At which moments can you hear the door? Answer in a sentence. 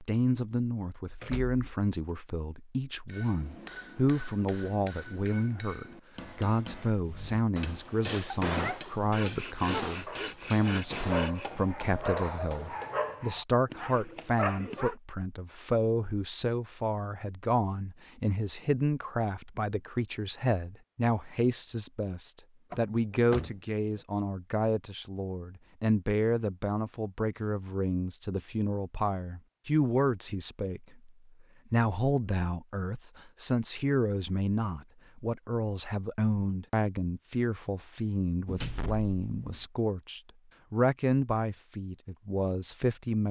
You can hear the door from 1.2 to 1.6 s, from 22.7 to 23.5 s and from 38.5 to 39.6 s.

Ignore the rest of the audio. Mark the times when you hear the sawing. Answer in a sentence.
The sawing can be heard from 9.1 to 11.5 s.